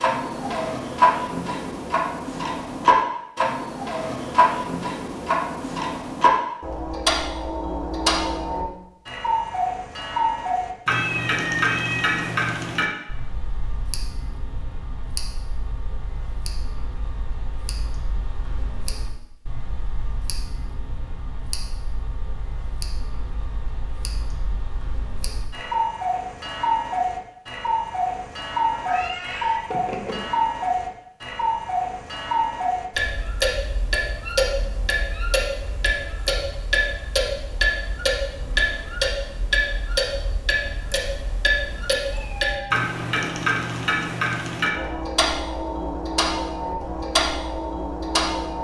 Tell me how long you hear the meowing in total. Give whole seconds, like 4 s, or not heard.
4 s.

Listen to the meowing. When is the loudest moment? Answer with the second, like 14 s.
12 s.